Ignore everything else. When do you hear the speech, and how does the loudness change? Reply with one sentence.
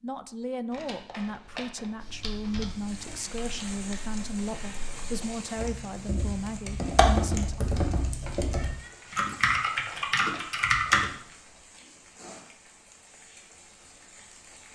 The speech can be heard from 0.0 to 7.7 s, at a steady volume.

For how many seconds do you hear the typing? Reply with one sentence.
The typing can be heard for 9 seconds in total.